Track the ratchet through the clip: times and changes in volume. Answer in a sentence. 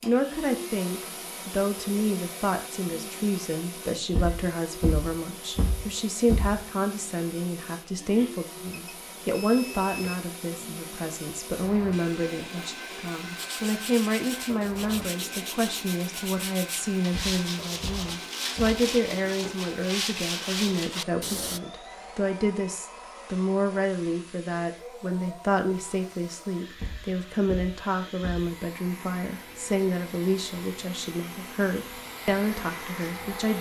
You can't hear the ratchet here.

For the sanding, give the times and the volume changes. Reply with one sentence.
You can hear the sanding from 13.3 to 21.6 s, getting louder.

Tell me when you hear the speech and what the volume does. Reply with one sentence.
You can hear the speech from 0.0 to 33.5 s, at a steady volume.